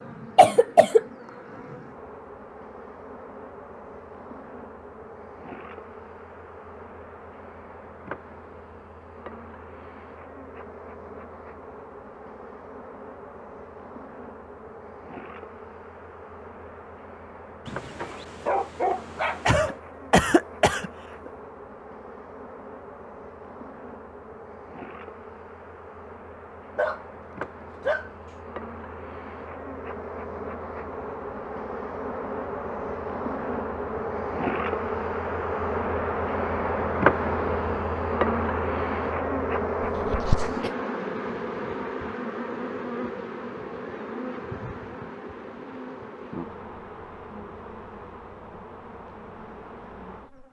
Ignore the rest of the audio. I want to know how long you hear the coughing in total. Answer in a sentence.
You can hear the coughing for 3 seconds altogether.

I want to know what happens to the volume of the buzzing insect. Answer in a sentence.
The loudness of the buzzing insect goes up, then down.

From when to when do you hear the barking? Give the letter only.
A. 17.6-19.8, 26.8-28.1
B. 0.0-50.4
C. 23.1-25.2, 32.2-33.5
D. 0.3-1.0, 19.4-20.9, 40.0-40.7
A.